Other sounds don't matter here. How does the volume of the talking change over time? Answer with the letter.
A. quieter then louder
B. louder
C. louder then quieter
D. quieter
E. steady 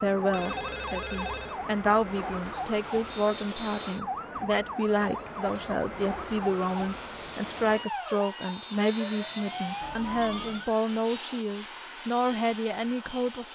E.